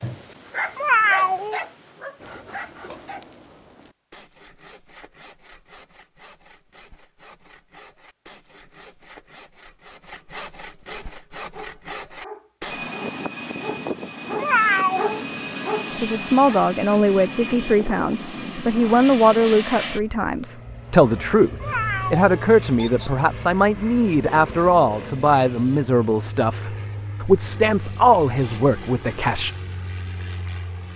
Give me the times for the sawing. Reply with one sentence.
You can hear the sawing from 2.2 to 12.9 s.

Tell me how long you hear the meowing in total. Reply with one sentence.
You can hear the meowing for 3 seconds altogether.